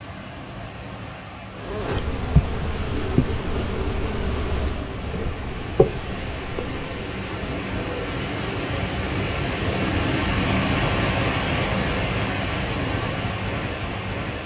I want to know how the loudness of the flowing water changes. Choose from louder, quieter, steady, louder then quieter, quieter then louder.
louder.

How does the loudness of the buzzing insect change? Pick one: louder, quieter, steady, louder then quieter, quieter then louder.
quieter then louder.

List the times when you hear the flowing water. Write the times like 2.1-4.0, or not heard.
0.0-14.4.